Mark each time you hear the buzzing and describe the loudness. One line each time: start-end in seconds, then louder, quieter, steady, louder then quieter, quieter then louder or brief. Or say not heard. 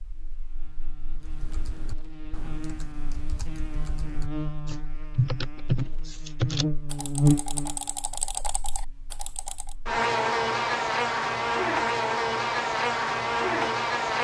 0.0-14.1 louder.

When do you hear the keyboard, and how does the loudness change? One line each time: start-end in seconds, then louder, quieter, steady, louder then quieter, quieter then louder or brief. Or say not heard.
1.1-9.8 louder then quieter.